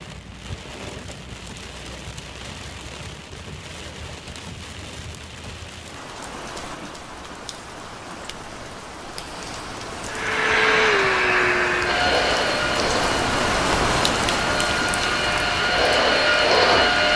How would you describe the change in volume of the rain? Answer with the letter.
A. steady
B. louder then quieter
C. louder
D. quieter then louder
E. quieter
C.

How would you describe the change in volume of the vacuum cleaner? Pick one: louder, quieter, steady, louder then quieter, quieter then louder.
quieter then louder.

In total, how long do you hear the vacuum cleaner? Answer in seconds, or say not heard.
7 s.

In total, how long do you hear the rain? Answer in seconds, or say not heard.
17 s.